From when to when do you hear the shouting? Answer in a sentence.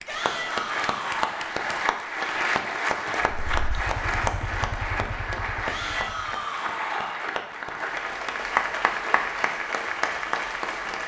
The shouting can be heard from 0.1 to 1.4 s and from 5.7 to 7.2 s.